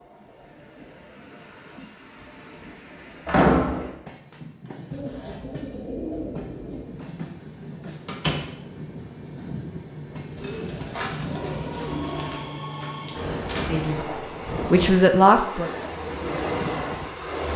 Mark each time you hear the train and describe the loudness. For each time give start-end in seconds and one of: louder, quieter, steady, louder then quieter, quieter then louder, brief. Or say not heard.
0.0-17.5 louder.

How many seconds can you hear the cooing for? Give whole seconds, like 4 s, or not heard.
4 s.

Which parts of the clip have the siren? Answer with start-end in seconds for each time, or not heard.
not heard.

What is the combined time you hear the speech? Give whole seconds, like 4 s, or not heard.
2 s.